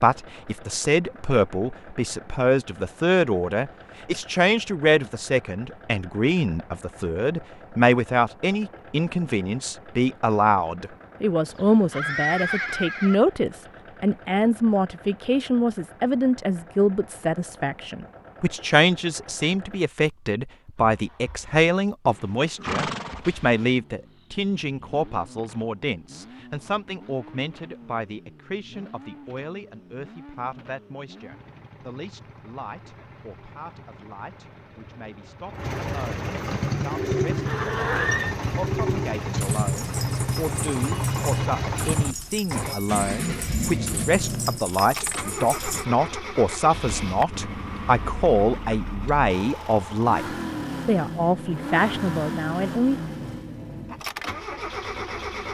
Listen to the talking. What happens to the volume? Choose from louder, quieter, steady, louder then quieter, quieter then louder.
quieter then louder.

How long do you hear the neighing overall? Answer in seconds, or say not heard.
4 s.